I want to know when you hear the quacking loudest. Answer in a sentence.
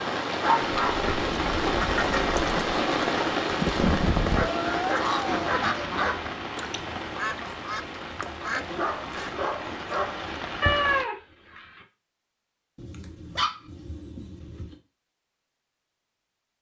The loudest moment of the quacking is at 4 seconds.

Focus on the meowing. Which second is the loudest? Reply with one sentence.
The loudest moment of the meowing is at 11 seconds.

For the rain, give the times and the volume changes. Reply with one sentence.
You can hear the rain from 0.0 to 11.1 s, getting quieter.